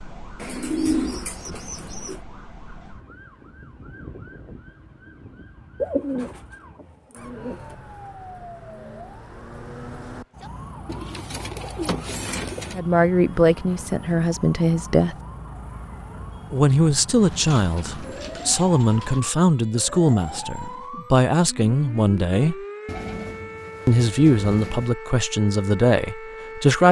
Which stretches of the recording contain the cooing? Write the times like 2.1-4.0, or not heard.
0.3-2.2, 5.8-7.8, 10.8-12.8, 17.2-19.2, 22.9-24.9.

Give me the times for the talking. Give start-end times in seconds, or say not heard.
12.7-15.2, 16.5-22.6, 23.9-26.8.